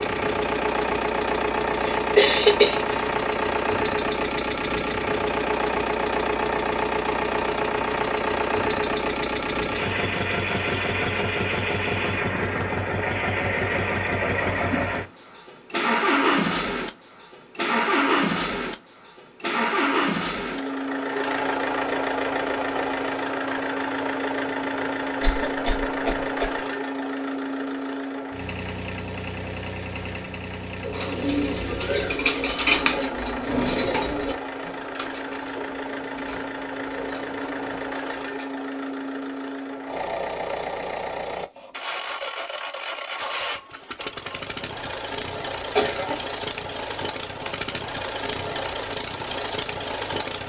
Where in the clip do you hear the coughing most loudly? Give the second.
2 s.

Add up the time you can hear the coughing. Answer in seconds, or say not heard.
3 s.